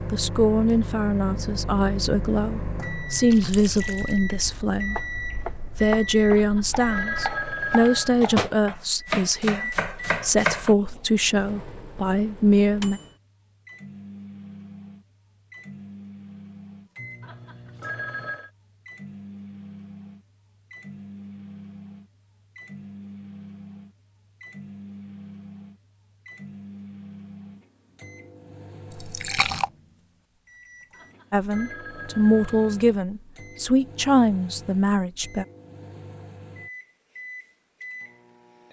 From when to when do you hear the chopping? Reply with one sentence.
You can hear the chopping from 5.0 to 10.8 s.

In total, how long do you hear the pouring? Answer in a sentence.
You can hear the pouring for 2 seconds altogether.